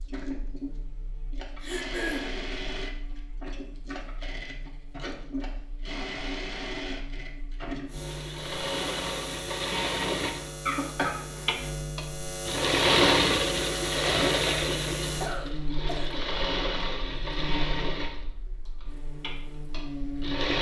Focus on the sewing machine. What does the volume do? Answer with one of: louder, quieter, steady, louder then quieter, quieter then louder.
louder then quieter.